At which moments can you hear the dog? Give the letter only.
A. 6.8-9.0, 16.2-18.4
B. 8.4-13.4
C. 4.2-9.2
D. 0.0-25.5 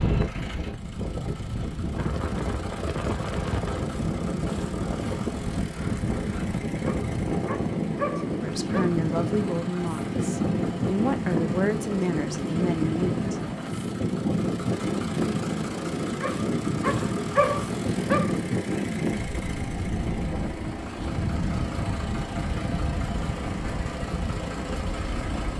A.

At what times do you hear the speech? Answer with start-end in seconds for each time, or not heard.
8.4-13.4.